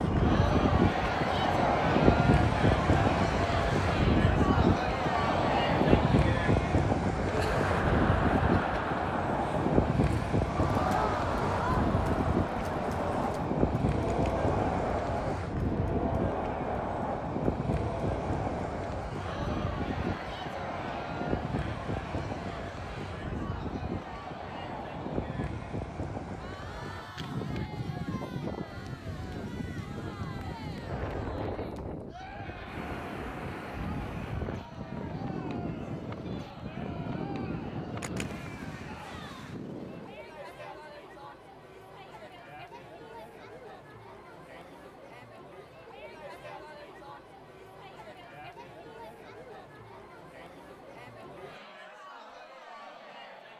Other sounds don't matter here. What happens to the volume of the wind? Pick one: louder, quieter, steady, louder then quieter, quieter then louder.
quieter.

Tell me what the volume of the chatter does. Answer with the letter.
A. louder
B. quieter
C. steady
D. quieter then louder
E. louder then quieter
B.